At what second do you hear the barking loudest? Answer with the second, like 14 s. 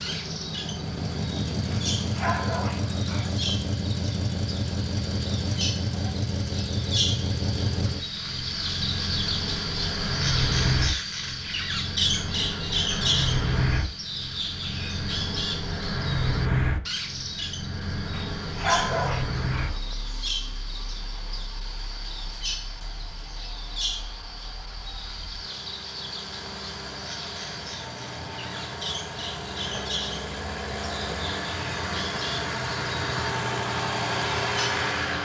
19 s.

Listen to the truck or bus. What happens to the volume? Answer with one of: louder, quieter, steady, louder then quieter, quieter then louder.
quieter then louder.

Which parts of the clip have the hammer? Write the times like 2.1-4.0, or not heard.
not heard.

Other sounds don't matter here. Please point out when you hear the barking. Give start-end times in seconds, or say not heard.
1.7-3.4, 18.1-19.8.